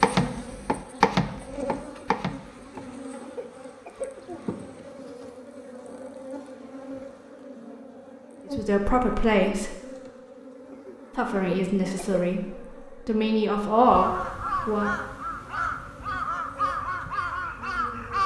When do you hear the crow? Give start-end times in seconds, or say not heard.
13.7-18.2.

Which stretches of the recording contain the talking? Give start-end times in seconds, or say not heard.
8.6-9.8, 11.1-14.9.